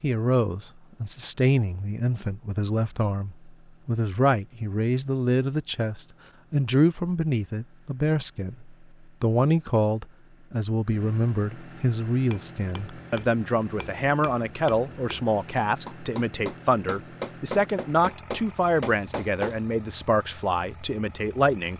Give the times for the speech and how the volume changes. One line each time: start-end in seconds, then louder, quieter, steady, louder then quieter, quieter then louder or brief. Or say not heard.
0.0-21.7 steady.